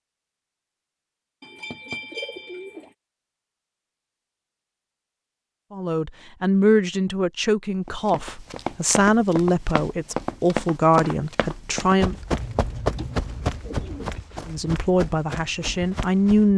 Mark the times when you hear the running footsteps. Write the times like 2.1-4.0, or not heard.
7.8-16.5.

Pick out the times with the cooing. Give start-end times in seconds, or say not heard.
1.4-2.9, 12.3-14.2.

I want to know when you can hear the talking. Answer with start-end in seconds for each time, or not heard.
5.7-12.2, 14.4-16.5.